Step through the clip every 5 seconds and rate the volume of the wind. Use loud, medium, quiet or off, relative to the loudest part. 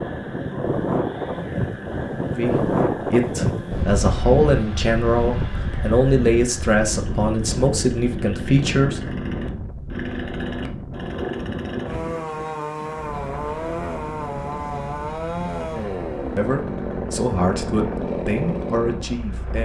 loud, medium, medium, quiet.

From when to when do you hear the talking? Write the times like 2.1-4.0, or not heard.
2.4-9.0, 16.4-19.5.